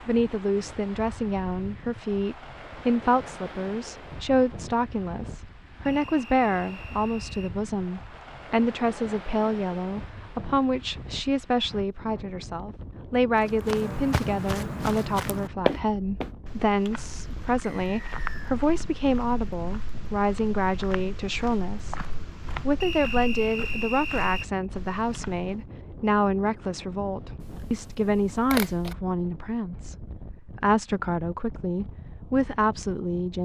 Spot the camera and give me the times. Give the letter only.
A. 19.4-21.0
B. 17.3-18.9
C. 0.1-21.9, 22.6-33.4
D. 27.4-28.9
D.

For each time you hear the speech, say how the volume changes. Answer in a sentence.
You can hear the speech from 0.1 to 21.9 s, at a steady volume; and from 22.6 to 33.4 s, at a steady volume.